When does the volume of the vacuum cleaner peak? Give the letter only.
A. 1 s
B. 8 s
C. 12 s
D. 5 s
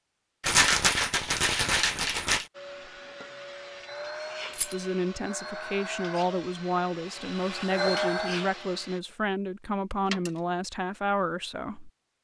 B.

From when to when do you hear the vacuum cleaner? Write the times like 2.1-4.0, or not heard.
2.5-9.0.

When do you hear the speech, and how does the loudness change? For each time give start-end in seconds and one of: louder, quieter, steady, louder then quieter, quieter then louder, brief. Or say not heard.
4.7-11.9 steady.